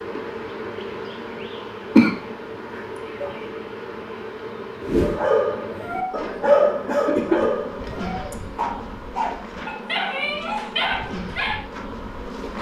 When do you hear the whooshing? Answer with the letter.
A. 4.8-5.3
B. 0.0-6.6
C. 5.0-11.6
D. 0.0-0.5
A.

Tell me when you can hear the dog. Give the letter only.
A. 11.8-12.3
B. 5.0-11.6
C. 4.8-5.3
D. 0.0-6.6
B.